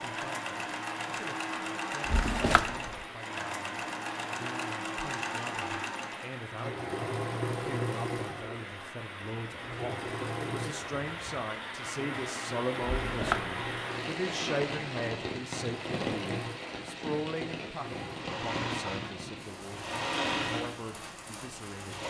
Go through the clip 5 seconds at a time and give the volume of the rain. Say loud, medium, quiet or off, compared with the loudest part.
medium, medium, loud, loud, medium.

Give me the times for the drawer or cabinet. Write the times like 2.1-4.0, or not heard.
2.0-2.8, 12.8-13.6.